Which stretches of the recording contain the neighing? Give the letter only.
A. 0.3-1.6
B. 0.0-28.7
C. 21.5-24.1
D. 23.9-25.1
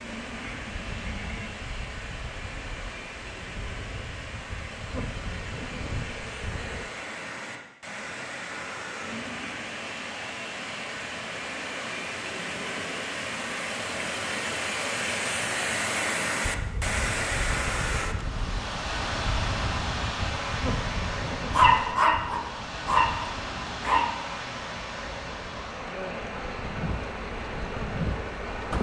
A.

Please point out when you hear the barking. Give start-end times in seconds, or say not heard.
21.5-24.1.